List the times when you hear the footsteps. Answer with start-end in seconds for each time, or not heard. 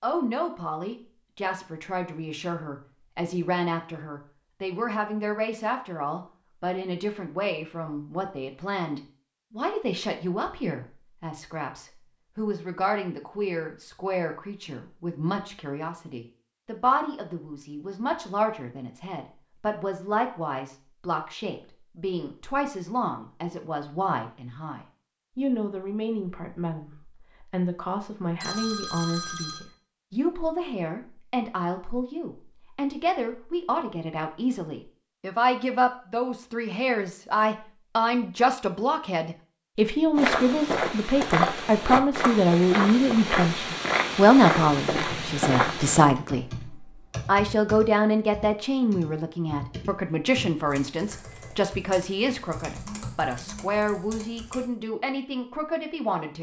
40.1-46.1.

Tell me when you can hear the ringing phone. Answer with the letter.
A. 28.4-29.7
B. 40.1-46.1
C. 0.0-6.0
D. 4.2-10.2
A.